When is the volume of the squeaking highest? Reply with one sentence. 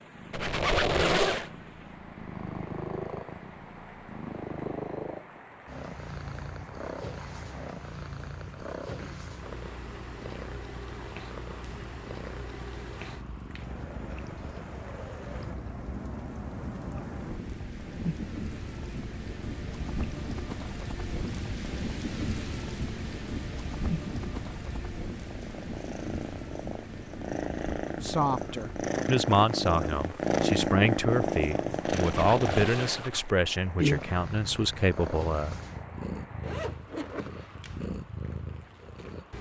The volume of the squeaking peaks at 1 second.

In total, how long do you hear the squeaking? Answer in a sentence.
The squeaking can be heard for 3 seconds in total.